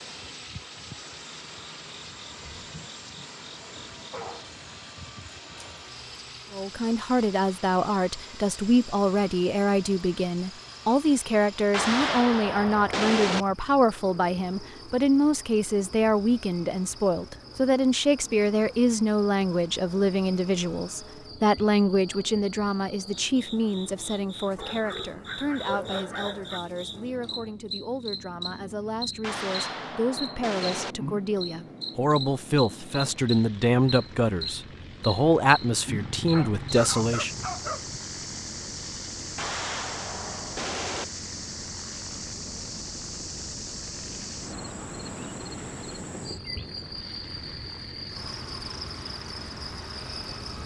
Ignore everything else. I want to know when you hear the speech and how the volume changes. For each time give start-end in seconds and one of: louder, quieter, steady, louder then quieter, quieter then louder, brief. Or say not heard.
6.5-37.4 quieter then louder.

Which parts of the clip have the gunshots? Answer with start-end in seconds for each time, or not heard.
11.7-13.4, 29.2-30.9, 39.4-41.0.